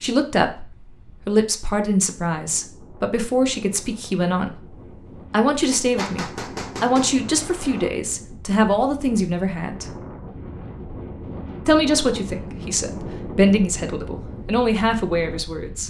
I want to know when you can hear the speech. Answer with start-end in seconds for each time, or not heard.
0.0-4.7, 5.3-9.8, 11.7-15.8.